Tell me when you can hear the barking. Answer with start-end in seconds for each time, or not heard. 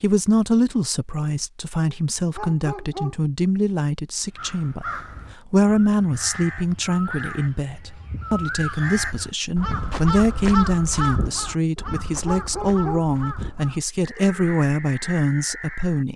1.9-3.1, 11.8-13.1.